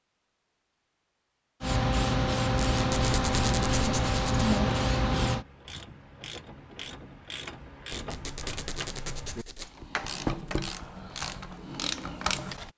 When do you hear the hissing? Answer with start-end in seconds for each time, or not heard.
1.6-5.5.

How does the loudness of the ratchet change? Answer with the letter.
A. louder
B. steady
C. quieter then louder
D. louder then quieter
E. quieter
A.